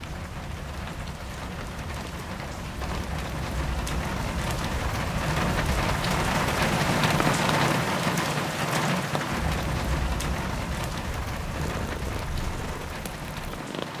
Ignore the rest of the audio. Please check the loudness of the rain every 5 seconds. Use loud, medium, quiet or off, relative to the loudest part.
medium, loud, medium.